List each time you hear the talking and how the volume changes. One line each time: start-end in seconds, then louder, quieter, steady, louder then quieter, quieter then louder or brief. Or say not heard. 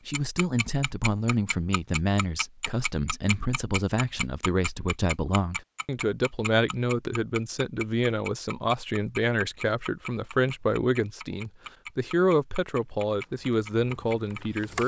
0.1-14.8 steady.